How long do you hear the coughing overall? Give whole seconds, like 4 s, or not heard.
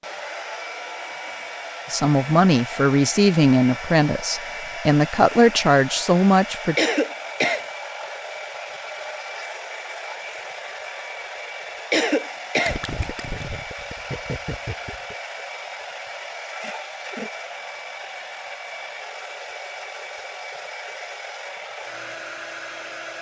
2 s.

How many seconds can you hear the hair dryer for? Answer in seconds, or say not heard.
23 s.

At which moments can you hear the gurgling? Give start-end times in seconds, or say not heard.
12.7-15.2.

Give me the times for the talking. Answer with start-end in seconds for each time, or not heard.
1.9-6.8.